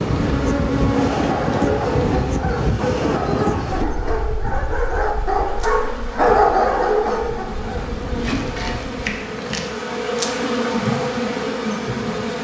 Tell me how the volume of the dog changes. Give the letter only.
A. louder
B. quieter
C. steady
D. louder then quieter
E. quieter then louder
A.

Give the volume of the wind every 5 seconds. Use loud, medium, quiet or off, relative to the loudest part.
loud, quiet, off.